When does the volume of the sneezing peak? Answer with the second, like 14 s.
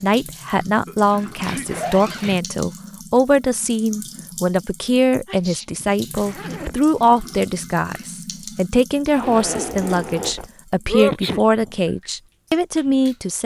11 s.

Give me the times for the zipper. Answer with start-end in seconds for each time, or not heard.
1.1-2.4, 6.2-6.9, 9.1-10.5.